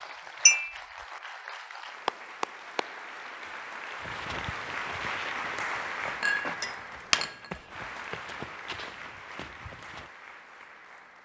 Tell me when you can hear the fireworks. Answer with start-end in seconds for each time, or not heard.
not heard.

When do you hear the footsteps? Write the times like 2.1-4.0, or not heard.
4.0-10.1.